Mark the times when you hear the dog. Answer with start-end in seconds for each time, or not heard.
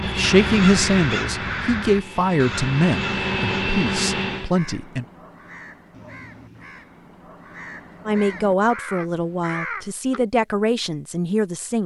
not heard.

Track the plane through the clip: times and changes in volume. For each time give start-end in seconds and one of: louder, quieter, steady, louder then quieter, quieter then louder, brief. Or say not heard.
0.0-4.5 quieter then louder.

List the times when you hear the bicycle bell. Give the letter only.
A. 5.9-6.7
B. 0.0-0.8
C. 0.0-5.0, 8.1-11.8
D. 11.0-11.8
A.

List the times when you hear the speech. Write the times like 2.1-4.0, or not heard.
0.0-5.0, 8.1-11.8.